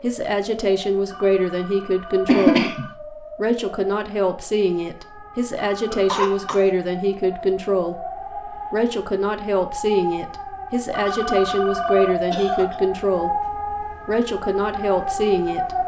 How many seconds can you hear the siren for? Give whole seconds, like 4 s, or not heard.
16 s.